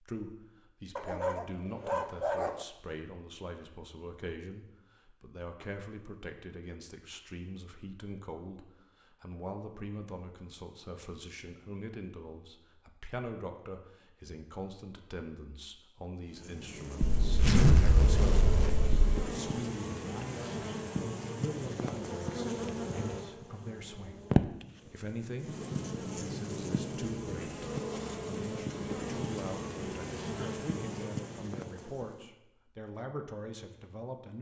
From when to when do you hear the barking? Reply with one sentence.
The barking can be heard from 0.9 to 2.6 s.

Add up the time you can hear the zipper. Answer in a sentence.
The zipper can be heard for 2 seconds in total.